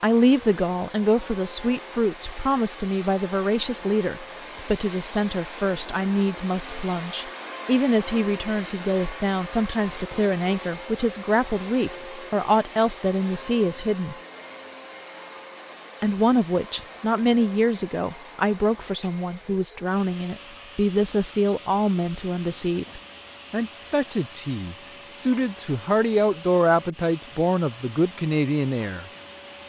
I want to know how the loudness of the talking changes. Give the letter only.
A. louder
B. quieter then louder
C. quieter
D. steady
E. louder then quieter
D.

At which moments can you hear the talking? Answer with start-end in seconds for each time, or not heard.
0.0-14.2, 16.0-29.1.